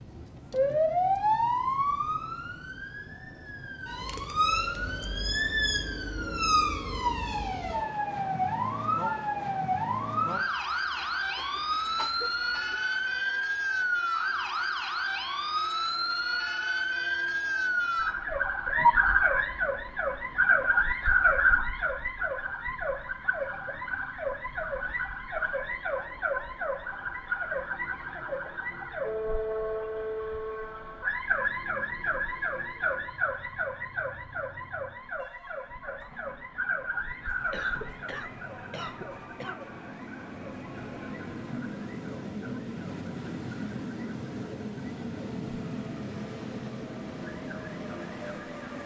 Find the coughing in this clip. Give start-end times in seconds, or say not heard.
11.3-12.8, 37.5-39.6.